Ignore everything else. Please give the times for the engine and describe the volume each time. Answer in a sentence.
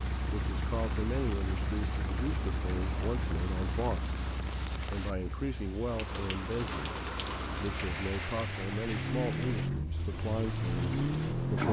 You can hear the engine from 0.0 to 11.6 s, getting quieter then louder.